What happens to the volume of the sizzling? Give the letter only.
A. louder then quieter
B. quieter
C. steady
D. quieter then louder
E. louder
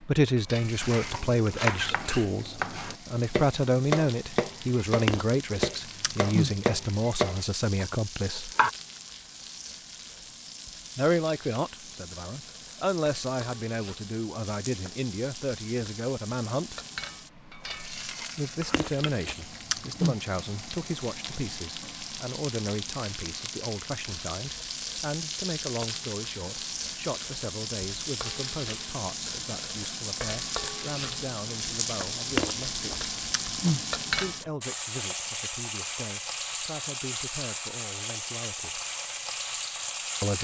E.